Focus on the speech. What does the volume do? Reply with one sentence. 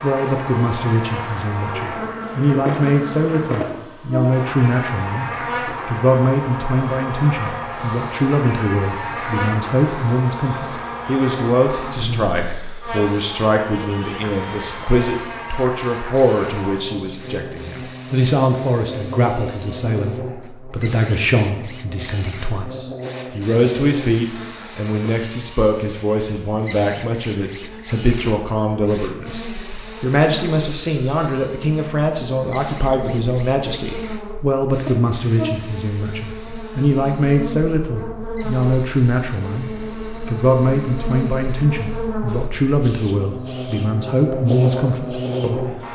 The volume of the speech stays about the same.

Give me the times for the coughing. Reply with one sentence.
The coughing can't be heard in this clip.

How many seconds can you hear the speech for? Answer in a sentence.
The speech can be heard for 46 seconds in total.